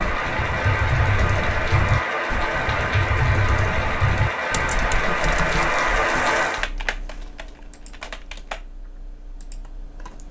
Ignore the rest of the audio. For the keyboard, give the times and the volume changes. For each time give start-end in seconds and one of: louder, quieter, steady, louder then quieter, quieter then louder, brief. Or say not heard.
0.0-10.2 quieter.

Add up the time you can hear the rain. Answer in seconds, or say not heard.
7 s.